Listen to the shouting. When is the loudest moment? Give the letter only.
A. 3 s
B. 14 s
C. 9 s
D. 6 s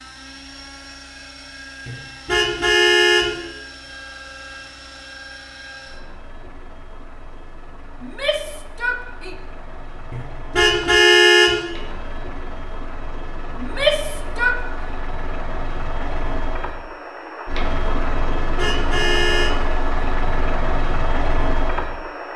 B.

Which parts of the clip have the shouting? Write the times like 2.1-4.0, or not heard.
8.0-9.3, 13.6-14.6.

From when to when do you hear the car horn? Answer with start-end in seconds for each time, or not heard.
1.9-3.4, 10.1-11.6, 18.1-19.6.